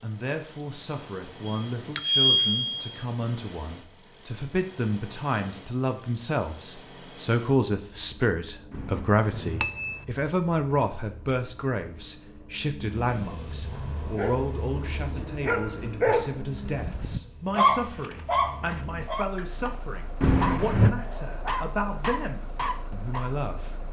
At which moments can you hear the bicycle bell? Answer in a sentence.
The bicycle bell can be heard from 1.4 to 3.0 s, from 8.7 to 10.0 s and from 20.2 to 20.9 s.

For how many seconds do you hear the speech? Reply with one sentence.
The speech can be heard for 24 seconds in total.